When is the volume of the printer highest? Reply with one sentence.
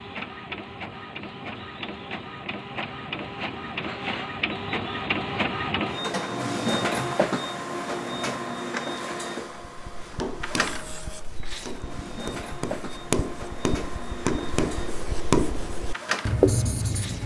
The volume of the printer peaks at 7 seconds.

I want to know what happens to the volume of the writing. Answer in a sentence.
The volume of the writing goes up.